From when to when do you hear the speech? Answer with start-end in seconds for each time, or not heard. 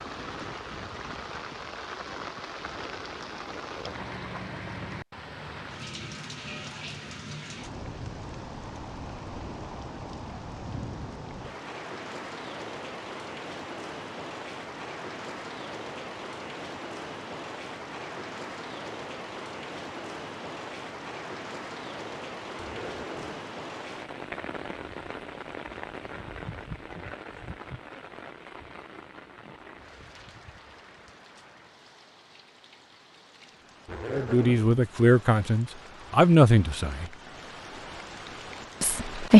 34.1-37.1, 38.8-39.3.